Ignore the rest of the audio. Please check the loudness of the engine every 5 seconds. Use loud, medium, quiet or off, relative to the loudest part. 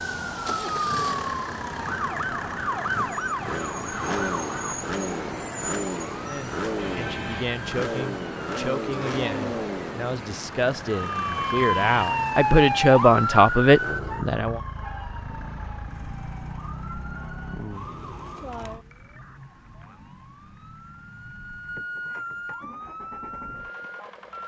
loud, loud, medium, quiet, quiet.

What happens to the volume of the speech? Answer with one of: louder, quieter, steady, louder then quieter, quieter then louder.
louder.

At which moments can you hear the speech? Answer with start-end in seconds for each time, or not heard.
6.2-14.6.